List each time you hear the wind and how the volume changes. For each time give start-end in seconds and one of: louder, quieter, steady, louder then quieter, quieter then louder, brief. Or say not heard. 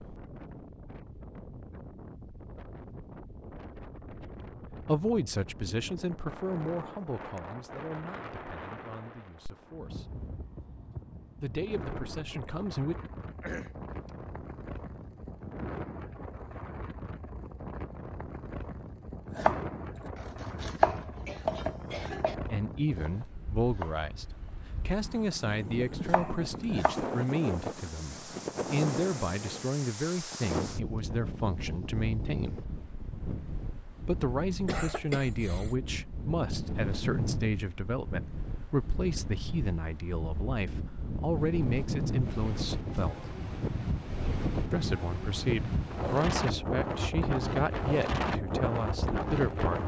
0.0-49.8 louder.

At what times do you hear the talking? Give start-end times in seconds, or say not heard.
4.8-10.2, 11.4-12.9, 22.5-32.6, 34.0-43.3, 44.7-49.8.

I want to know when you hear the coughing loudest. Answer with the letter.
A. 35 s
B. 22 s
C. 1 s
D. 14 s
A.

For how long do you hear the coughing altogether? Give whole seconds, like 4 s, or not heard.
3 s.